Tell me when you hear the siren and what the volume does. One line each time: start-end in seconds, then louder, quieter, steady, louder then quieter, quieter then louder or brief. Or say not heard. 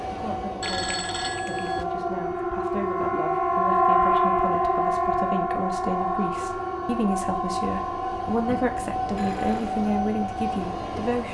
0.2-11.2 louder then quieter.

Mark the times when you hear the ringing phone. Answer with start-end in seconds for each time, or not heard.
0.6-1.9, 8.4-9.8.